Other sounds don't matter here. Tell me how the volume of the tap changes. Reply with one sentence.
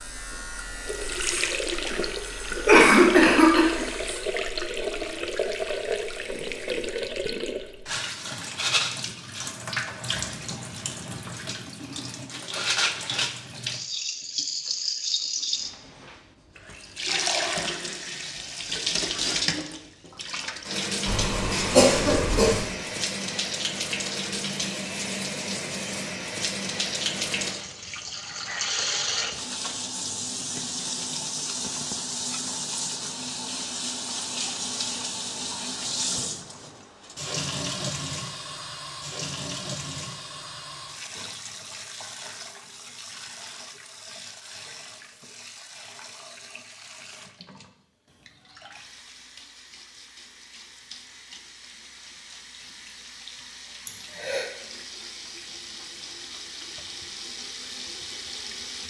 The volume of the tap goes down.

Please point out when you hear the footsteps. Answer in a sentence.
The footsteps can't be heard in this clip.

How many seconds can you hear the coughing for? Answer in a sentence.
The coughing can be heard for 3 seconds in total.